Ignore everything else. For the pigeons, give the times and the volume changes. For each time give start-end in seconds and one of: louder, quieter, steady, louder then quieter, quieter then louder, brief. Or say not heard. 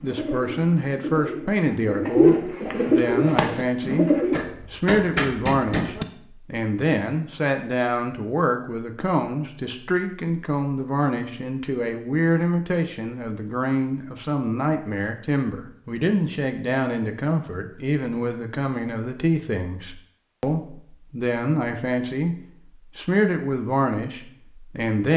0.0-4.4 louder then quieter.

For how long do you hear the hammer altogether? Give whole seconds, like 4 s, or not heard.
2 s.